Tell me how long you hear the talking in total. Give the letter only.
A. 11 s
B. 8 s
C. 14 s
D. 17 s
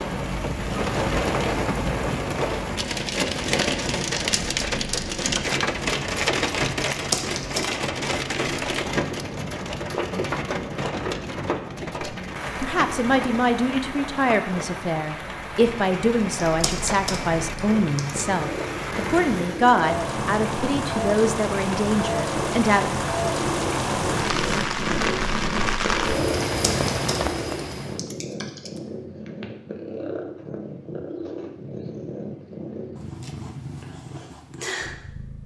A.